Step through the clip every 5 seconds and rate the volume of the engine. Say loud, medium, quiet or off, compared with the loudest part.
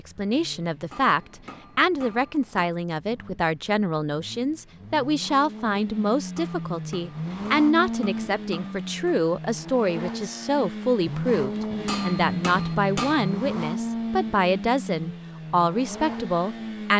quiet, loud, loud, medium.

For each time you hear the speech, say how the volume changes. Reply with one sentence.
You can hear the speech from 0.0 to 16.9 s, at a steady volume.